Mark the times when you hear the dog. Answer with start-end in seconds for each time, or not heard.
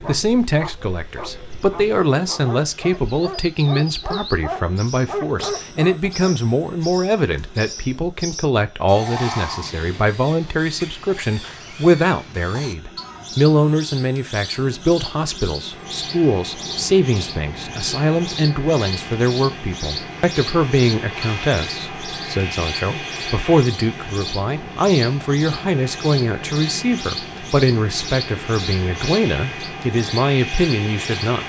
0.0-6.2.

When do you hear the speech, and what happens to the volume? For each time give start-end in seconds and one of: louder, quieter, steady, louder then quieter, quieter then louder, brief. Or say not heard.
0.1-31.4 steady.